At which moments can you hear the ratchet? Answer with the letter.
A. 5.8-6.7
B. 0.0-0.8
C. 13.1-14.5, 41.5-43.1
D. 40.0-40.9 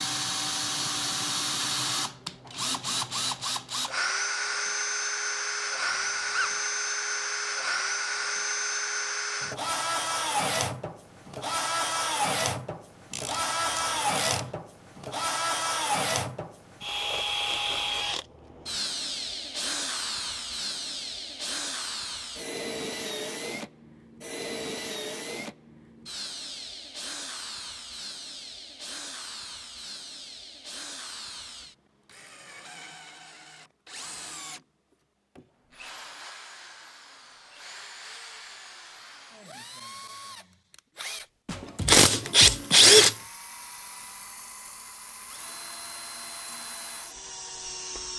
C.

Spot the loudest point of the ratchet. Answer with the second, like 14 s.
43 s.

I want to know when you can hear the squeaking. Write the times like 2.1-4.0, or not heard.
5.8-6.7.